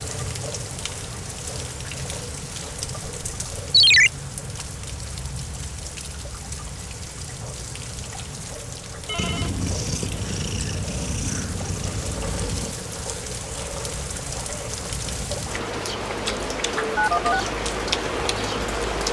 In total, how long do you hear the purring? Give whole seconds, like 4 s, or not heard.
4 s.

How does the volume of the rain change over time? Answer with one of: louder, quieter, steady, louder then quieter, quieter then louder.
louder.